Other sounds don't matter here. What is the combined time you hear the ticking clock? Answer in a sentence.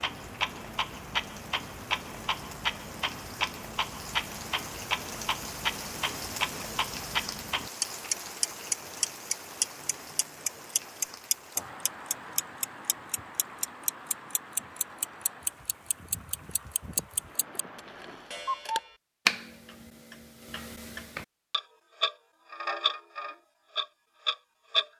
The ticking clock can be heard for 25 seconds in total.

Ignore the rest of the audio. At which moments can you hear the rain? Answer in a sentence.
The rain can be heard from 0.0 to 18.6 s.